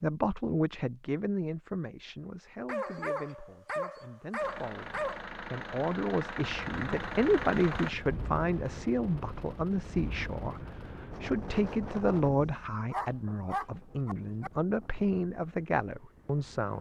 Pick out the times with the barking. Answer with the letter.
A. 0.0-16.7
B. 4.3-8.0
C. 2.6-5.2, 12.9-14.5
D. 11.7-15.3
C.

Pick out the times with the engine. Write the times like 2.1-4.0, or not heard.
4.3-8.0.